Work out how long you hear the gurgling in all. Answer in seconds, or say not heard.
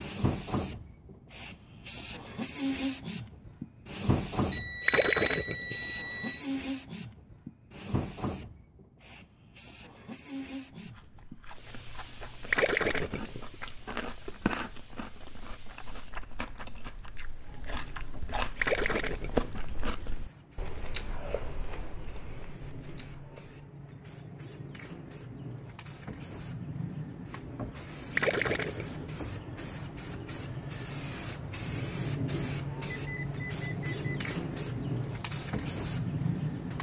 4 s.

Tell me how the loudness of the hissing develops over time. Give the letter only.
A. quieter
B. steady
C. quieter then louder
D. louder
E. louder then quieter
C.